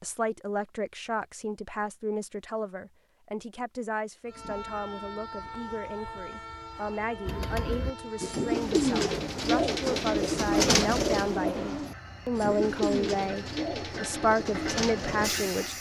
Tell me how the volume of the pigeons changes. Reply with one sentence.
The loudness of the pigeons goes down.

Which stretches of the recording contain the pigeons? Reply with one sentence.
The pigeons can be heard from 7.2 to 15.5 s.